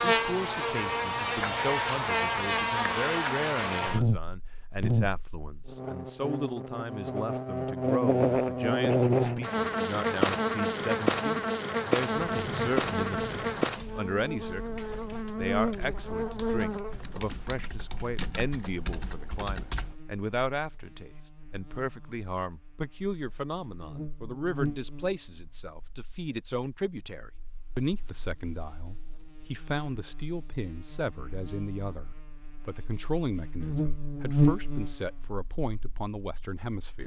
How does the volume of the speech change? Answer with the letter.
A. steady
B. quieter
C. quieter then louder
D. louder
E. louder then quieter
A.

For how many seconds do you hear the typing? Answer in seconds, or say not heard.
8 s.